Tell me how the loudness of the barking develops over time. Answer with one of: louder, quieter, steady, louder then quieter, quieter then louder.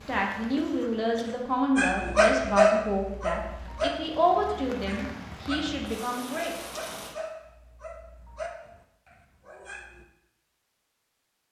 quieter.